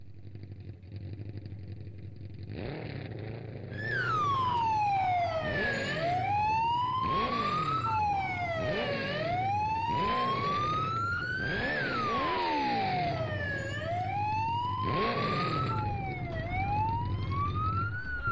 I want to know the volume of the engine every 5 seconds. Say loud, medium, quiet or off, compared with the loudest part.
medium, loud, loud, loud.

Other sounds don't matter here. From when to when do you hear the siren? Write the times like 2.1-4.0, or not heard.
3.7-18.2.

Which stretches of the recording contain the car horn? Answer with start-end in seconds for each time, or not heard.
not heard.